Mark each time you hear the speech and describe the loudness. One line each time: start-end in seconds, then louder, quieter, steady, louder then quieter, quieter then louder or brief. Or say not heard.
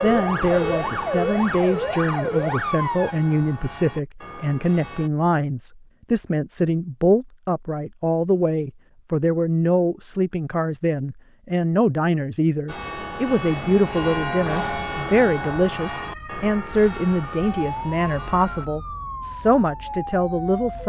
0.0-20.8 steady.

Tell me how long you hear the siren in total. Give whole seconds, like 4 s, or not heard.
8 s.